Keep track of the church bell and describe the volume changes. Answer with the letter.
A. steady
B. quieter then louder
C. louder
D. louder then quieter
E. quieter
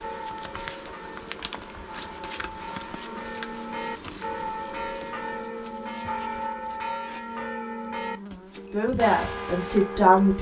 C.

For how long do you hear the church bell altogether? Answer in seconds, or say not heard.
10 s.